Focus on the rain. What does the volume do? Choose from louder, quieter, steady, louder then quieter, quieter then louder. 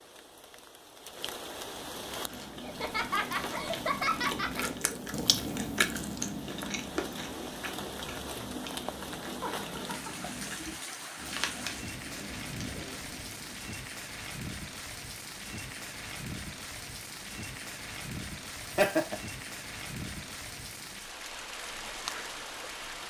steady.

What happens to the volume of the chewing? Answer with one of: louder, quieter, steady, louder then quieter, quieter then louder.
louder then quieter.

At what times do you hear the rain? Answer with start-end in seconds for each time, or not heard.
0.0-23.0.